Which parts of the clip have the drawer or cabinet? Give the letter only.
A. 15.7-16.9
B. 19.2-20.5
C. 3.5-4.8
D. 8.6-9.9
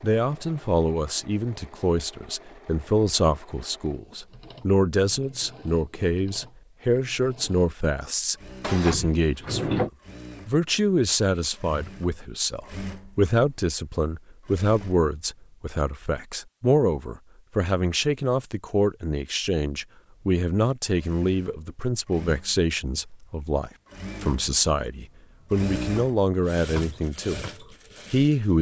D.